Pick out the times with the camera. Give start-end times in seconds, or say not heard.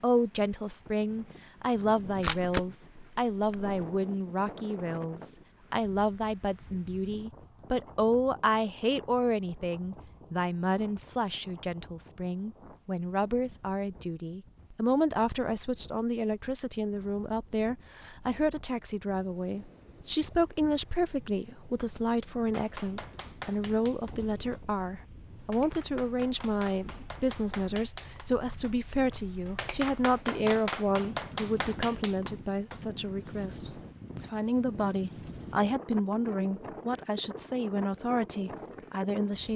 2.0-3.8.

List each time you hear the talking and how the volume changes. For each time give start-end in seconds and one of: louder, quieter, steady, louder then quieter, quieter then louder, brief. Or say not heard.
0.0-39.5 steady.